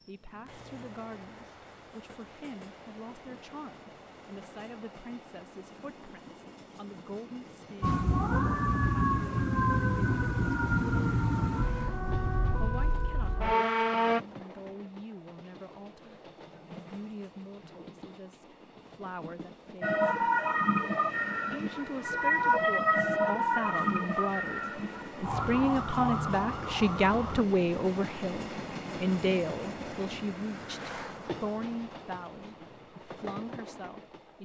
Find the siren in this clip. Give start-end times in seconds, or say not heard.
7.8-14.2, 19.8-27.4.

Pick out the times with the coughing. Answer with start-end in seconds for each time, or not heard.
not heard.